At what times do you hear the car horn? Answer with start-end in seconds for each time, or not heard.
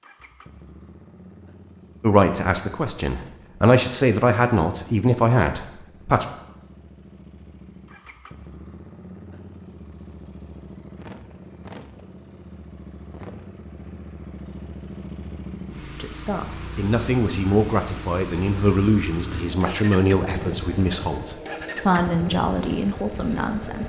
not heard.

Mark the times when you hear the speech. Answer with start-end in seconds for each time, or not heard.
2.0-6.2, 15.9-23.8.